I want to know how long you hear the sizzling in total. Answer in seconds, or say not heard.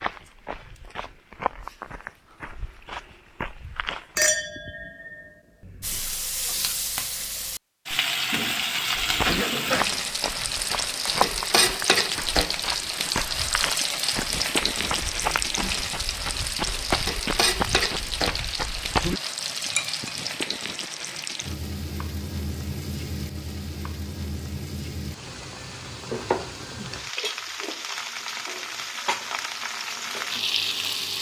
25 s.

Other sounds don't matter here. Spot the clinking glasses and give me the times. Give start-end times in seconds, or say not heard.
4.2-6.0, 19.6-20.2.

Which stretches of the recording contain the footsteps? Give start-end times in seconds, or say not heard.
0.0-4.2, 9.0-19.2.